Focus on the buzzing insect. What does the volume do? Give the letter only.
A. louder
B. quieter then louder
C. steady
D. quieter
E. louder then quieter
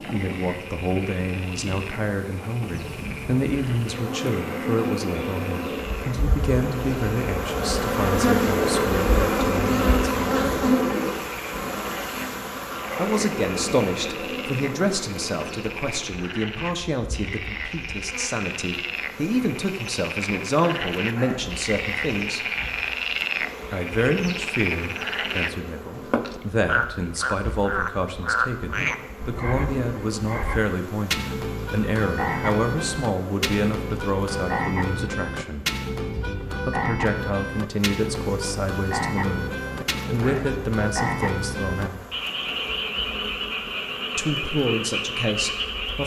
D.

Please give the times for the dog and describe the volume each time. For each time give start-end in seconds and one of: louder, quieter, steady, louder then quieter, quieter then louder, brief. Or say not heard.
not heard.